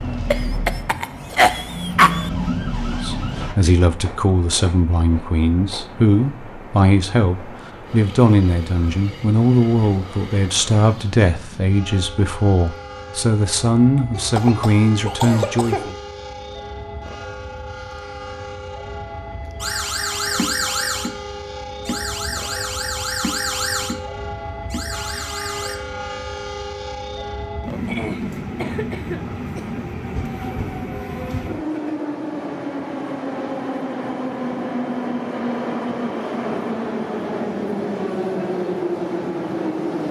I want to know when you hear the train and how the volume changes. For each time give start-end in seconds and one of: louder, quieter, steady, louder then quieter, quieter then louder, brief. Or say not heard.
0.0-40.0 louder.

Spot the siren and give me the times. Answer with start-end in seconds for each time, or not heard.
0.0-3.5, 19.6-25.8.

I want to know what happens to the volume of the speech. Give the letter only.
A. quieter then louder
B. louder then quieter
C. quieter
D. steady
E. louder
D.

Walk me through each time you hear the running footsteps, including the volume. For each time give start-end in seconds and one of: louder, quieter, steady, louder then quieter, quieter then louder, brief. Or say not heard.
not heard.